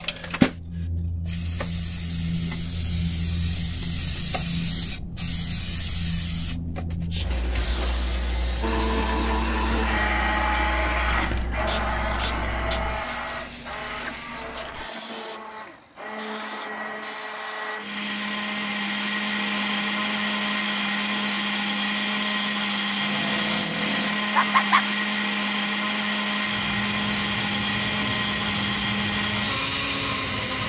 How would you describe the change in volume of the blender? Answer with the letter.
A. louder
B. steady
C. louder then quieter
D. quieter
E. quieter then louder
E.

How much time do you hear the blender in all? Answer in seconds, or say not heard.
22 s.